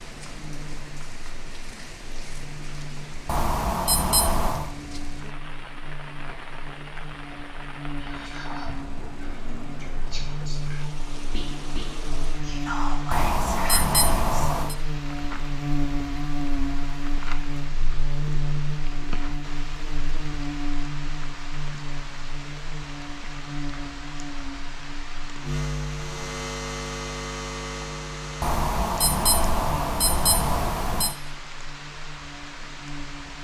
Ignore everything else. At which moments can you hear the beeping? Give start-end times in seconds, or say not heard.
3.2-4.7, 13.1-14.8, 28.4-31.1.